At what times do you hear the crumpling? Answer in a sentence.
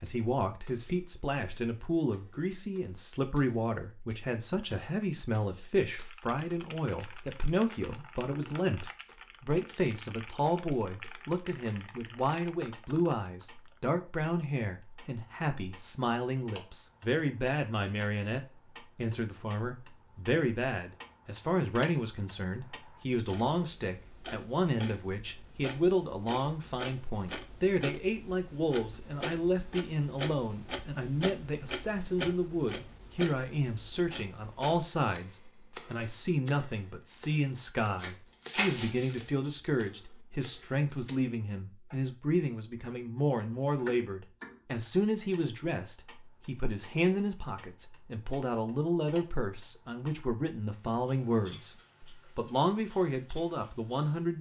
The crumpling can be heard from 38.0 to 39.2 s.